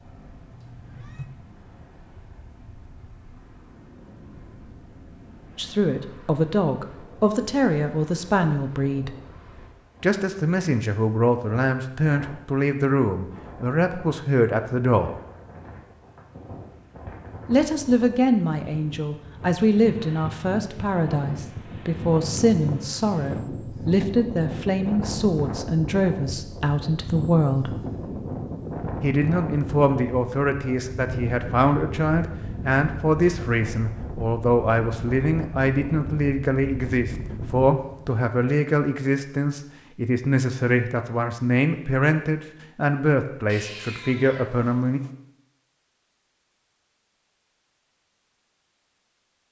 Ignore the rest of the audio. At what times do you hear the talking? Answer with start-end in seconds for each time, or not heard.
5.5-9.2, 10.0-15.2, 17.4-27.8, 29.0-45.0.